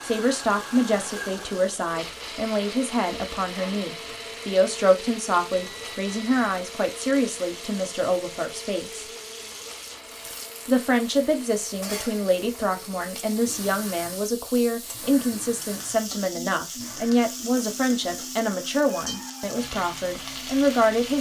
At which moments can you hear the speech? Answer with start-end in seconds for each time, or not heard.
0.0-9.1, 10.7-21.1.